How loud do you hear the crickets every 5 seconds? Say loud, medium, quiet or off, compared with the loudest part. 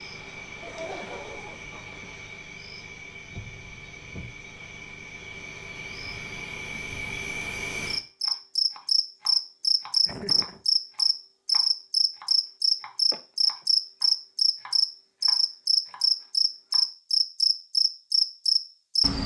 quiet, medium, loud, loud.